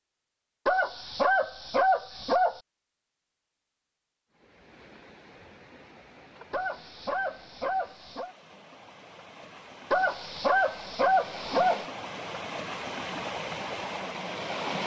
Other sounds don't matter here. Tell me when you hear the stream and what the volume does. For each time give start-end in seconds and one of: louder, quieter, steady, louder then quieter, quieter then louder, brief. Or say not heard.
4.3-14.8 louder.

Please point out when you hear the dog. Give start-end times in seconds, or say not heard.
0.7-2.6, 6.5-8.3, 9.9-11.8.